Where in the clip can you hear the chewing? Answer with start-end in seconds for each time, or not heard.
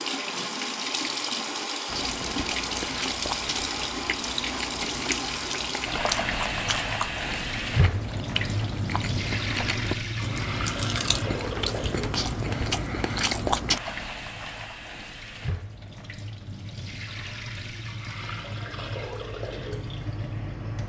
1.9-13.8.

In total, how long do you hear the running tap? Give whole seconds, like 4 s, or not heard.
21 s.